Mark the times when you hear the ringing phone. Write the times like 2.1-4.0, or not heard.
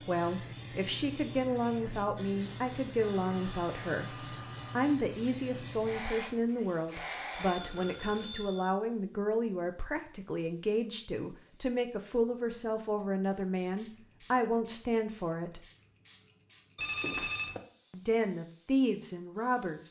3.0-5.0, 7.3-8.8, 16.8-17.6.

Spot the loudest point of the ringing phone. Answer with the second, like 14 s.
17 s.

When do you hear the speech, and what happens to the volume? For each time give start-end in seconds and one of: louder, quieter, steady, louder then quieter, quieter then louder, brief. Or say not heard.
0.1-15.7 steady
17.9-19.8 brief.